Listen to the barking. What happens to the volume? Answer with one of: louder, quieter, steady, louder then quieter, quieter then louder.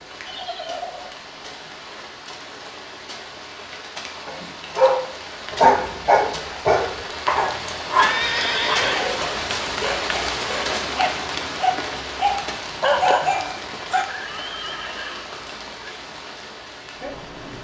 quieter then louder.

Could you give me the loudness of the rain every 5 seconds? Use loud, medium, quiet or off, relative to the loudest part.
medium, loud, loud, medium.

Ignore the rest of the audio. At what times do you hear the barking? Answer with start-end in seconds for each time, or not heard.
4.2-14.1.